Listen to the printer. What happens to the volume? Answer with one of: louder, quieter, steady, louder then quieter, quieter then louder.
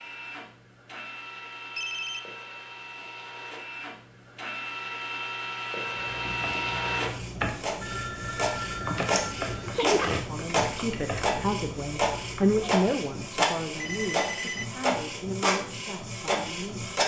louder.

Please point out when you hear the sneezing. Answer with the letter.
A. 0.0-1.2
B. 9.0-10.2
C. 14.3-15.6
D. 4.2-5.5
B.